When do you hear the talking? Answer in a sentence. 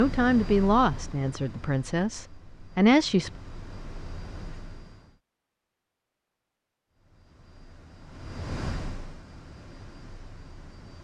The talking can be heard from 0.0 to 3.3 s.